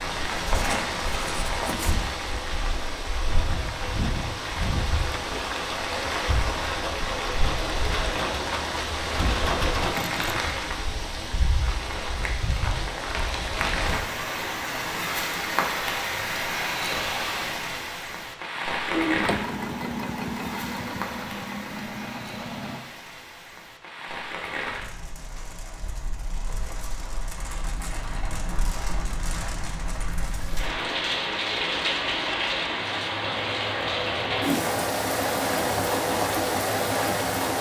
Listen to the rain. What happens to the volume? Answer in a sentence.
The loudness of the rain goes down, then up.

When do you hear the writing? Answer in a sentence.
You can hear the writing from 0.0 to 2.2 s.